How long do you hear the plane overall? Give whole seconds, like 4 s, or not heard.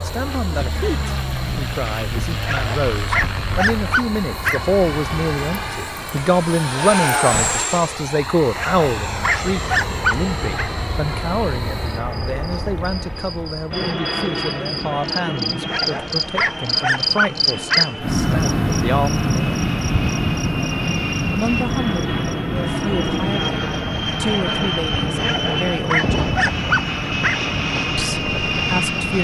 29 s.